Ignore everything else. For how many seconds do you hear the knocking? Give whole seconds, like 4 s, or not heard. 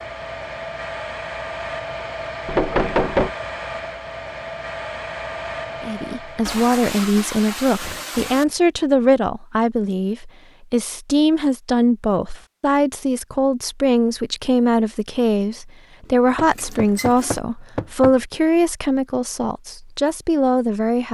3 s.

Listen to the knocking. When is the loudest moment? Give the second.
3 s.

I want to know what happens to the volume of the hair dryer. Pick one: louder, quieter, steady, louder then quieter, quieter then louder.
steady.